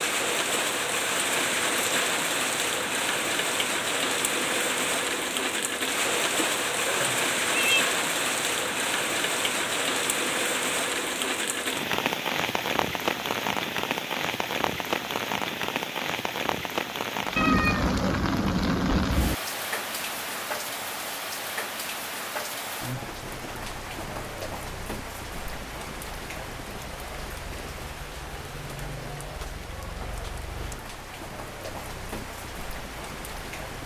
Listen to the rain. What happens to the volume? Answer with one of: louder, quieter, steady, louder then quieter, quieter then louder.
quieter.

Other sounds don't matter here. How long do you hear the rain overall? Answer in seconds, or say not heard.
34 s.